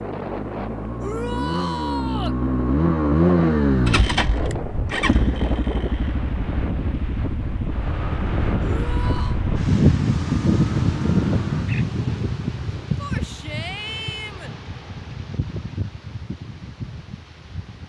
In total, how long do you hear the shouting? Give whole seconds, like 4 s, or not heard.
4 s.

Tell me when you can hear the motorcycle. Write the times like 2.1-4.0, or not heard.
0.0-13.0.